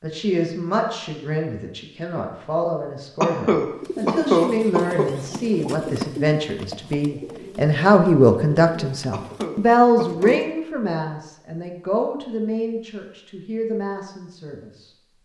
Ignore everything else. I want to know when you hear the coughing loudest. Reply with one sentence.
The volume of the coughing peaks at 4 seconds.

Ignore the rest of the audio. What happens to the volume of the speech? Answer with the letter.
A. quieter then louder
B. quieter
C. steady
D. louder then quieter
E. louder
D.